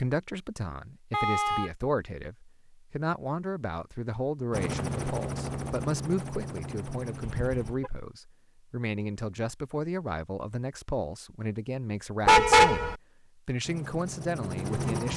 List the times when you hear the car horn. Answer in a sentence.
You can hear the car horn from 1.1 to 1.7 s, from 7.2 to 7.9 s and from 12.2 to 12.9 s.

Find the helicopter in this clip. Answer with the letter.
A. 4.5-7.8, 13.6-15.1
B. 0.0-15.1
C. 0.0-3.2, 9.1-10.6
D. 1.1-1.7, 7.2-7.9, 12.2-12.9
A.